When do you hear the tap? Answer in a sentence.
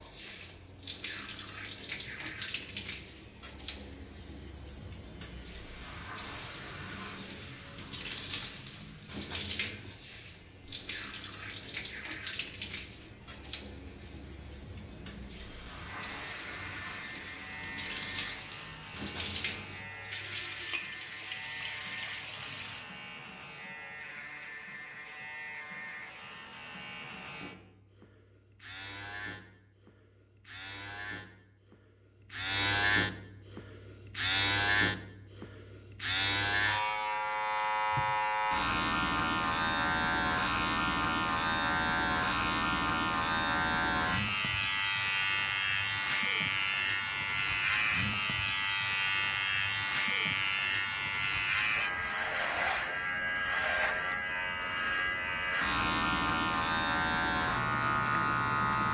The tap can be heard from 0.0 to 22.9 s.